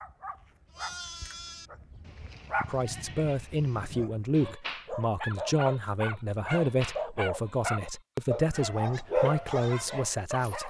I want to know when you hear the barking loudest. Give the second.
9 s.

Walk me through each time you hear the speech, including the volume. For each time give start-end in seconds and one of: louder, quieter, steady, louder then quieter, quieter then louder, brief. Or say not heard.
2.6-10.6 steady.